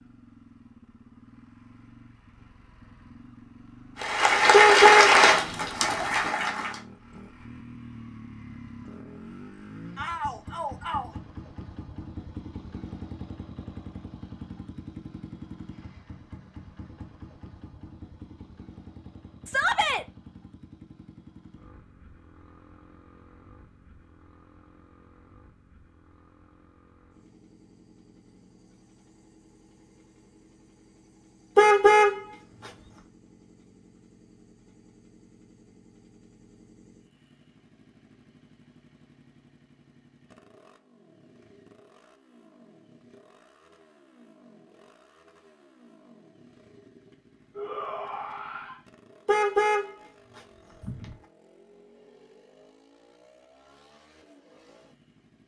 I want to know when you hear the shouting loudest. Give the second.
20 s.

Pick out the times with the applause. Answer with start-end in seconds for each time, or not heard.
4.0-6.8.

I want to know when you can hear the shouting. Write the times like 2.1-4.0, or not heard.
9.9-11.1, 19.4-20.1, 47.5-48.8.